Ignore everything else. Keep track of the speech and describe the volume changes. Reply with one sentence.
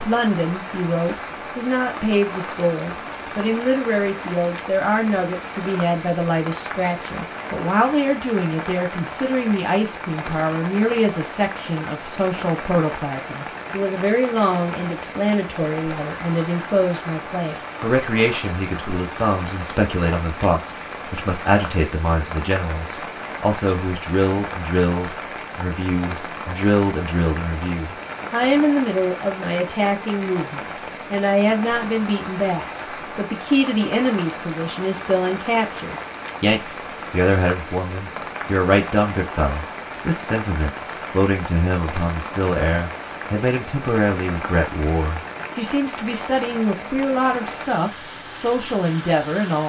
The volume of the speech stays about the same.